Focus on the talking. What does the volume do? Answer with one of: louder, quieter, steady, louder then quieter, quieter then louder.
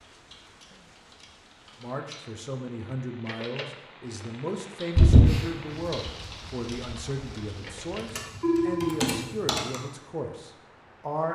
steady.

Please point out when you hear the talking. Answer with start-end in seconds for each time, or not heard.
1.8-11.3.